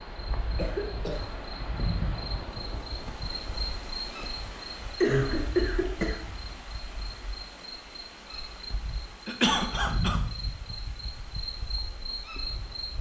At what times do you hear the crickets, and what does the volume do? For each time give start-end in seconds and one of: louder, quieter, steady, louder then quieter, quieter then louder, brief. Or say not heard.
0.0-12.9 quieter then louder.